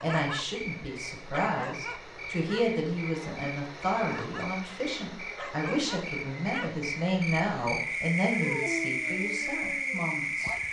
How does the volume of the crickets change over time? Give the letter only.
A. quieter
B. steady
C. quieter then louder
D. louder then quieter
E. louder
E.